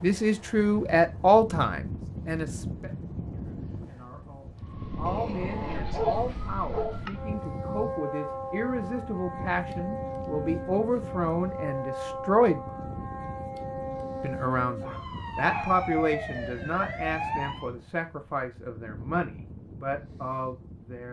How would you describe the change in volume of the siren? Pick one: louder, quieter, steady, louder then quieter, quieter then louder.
louder.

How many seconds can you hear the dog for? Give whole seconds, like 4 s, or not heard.
3 s.